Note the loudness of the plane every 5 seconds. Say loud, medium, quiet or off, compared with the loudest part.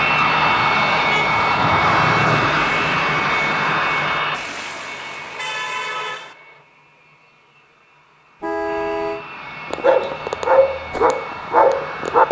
loud, quiet, quiet.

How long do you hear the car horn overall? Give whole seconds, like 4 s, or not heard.
5 s.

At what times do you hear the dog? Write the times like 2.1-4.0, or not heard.
9.7-12.2.